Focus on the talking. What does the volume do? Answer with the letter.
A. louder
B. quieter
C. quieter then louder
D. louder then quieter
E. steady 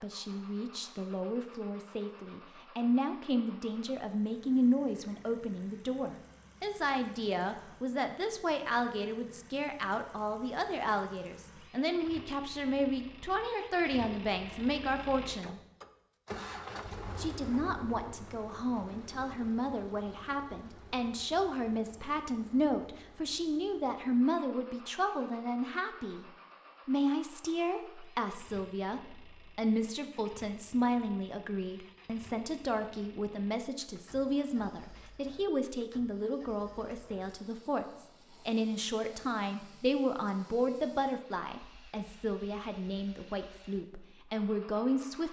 E.